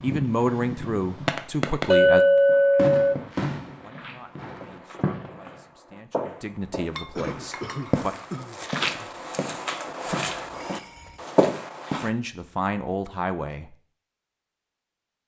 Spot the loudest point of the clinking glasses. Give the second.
2 s.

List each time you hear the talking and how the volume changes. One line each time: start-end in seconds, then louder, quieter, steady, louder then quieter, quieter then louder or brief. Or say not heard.
0.0-2.2 brief
3.8-8.2 louder
12.0-13.8 brief.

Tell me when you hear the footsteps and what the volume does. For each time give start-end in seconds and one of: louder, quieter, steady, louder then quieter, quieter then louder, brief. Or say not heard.
2.5-12.1 louder.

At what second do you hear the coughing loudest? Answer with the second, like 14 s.
8 s.